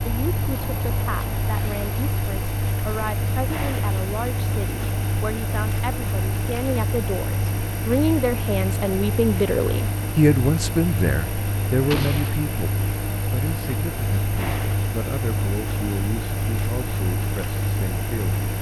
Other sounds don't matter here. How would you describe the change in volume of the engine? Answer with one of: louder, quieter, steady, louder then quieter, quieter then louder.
steady.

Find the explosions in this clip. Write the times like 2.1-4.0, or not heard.
11.9-12.4.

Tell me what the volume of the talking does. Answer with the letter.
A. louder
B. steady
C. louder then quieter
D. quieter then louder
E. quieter
C.